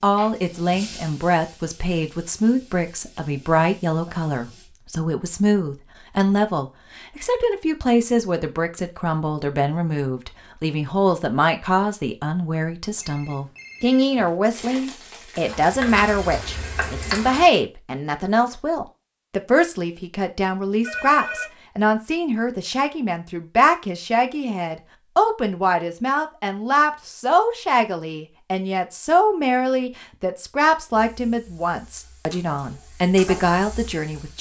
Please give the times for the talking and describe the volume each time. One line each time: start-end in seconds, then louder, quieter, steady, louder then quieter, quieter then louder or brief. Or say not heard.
0.0-34.3 steady.